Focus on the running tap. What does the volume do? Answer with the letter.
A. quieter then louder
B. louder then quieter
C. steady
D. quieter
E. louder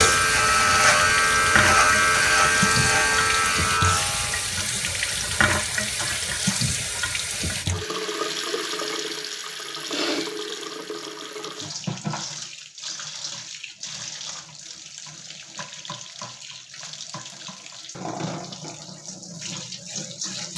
D.